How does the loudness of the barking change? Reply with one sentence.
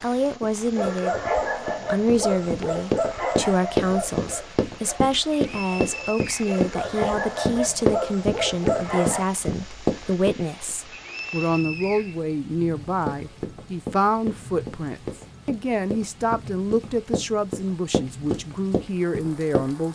The volume of the barking goes down, then up.